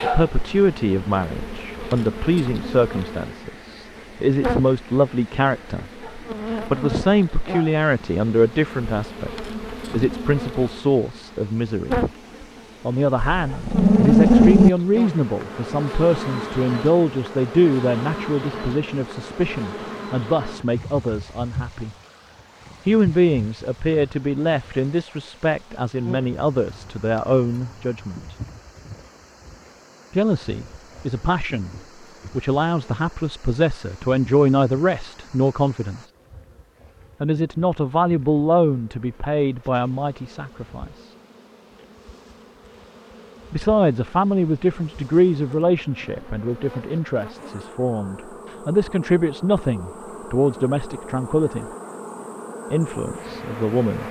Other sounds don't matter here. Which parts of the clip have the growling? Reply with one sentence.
You can hear the growling from 13.2 to 14.7 s.